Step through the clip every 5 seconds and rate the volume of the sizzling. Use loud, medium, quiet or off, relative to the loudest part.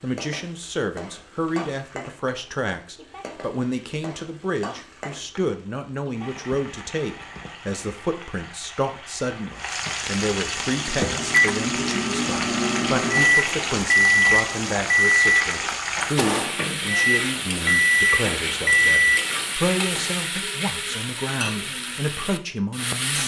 quiet, medium, loud, loud, loud.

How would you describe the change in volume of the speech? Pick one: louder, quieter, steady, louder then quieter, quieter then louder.
steady.